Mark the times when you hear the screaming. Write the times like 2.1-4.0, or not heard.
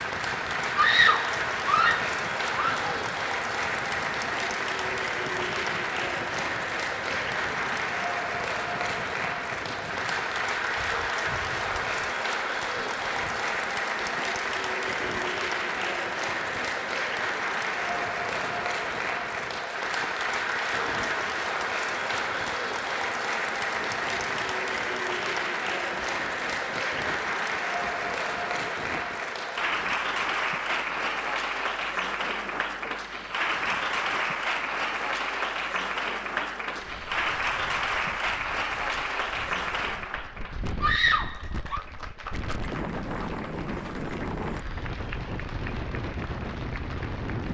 0.8-2.9, 40.8-41.8.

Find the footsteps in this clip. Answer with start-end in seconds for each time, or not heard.
not heard.